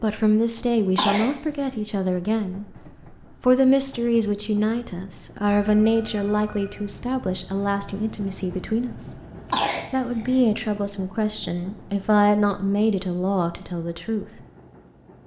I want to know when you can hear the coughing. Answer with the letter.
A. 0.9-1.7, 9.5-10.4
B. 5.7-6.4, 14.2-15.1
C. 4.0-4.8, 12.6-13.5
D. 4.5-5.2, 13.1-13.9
A.